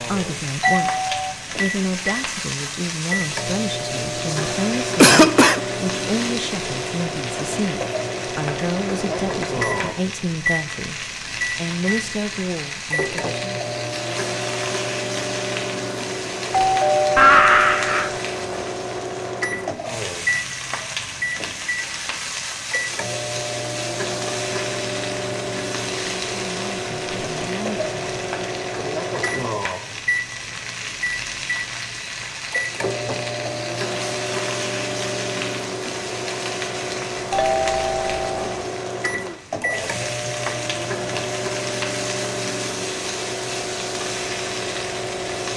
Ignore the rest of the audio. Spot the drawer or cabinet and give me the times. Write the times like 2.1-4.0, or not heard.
not heard.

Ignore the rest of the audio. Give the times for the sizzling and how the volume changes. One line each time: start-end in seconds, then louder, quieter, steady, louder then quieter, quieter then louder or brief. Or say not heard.
0.0-45.5 steady.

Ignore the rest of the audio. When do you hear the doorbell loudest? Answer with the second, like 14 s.
17 s.